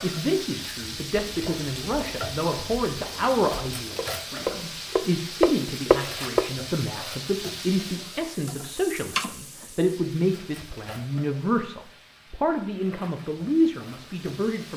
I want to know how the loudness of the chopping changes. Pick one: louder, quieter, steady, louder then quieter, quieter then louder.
louder.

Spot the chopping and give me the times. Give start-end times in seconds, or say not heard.
1.2-6.5.